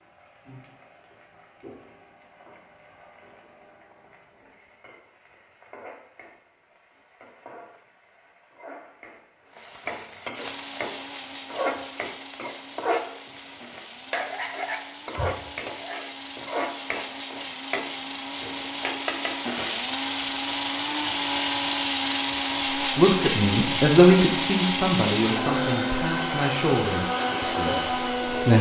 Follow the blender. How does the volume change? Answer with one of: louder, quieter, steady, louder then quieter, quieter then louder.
louder.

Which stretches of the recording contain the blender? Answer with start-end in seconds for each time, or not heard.
10.3-28.5.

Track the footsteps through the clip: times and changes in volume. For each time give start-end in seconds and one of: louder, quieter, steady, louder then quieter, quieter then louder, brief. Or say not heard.
not heard.